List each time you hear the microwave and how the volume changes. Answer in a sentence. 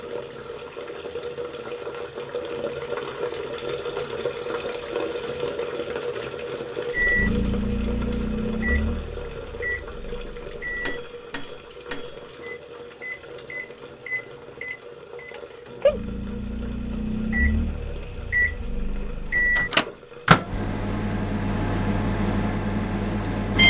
The microwave can be heard from 6.9 to 23.6 s, getting quieter then louder.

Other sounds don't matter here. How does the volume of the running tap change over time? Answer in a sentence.
The loudness of the running tap goes down.